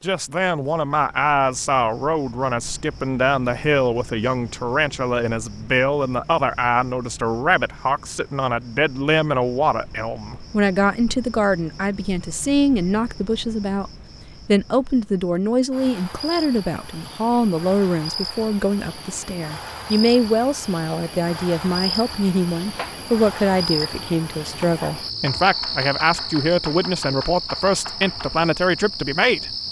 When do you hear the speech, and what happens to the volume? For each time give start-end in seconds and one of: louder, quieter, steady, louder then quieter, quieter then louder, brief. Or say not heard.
0.0-29.6 steady.